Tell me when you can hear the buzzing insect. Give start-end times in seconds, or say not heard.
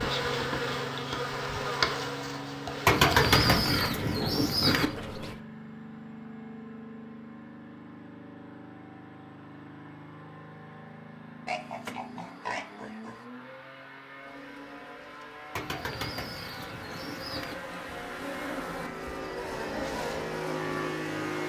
0.0-3.5, 14.1-21.4.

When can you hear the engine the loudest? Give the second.
21 s.